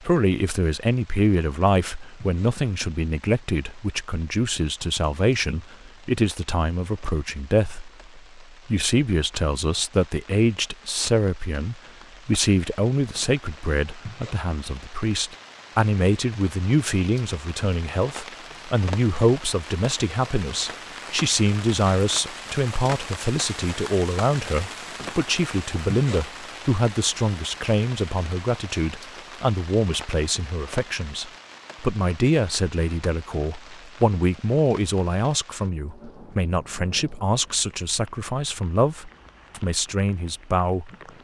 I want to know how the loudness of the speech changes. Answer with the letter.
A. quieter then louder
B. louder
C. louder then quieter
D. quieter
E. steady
E.